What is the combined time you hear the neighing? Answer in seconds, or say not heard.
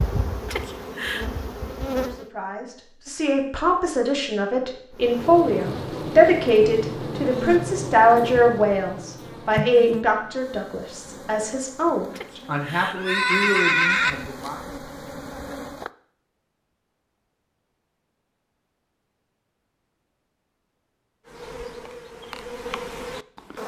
3 s.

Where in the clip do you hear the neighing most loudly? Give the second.
14 s.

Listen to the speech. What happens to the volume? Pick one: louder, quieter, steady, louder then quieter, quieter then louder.
louder then quieter.